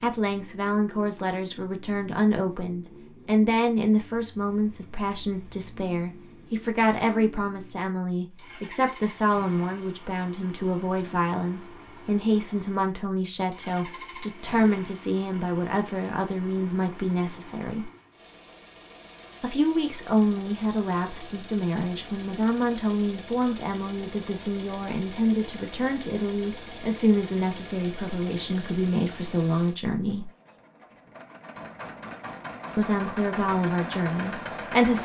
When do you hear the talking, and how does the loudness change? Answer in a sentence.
The talking can be heard from 0.0 to 17.9 s, at a steady volume; from 19.4 to 30.3 s, at a steady volume; and briefly from 32.8 to 35.0 s.